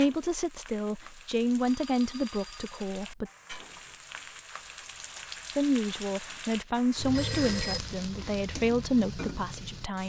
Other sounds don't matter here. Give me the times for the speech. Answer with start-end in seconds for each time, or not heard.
0.0-3.3, 5.5-10.0.